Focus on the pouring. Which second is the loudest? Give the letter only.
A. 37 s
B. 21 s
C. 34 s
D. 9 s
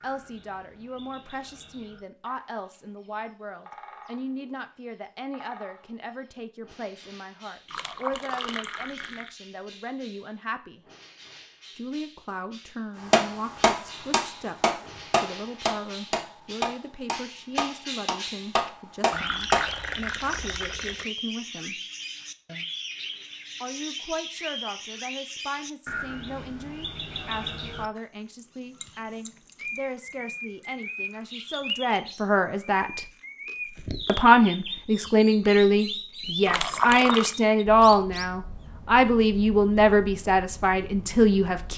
A.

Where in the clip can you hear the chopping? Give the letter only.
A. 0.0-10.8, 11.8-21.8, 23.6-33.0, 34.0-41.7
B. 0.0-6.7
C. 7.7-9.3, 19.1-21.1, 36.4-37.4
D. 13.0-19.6
D.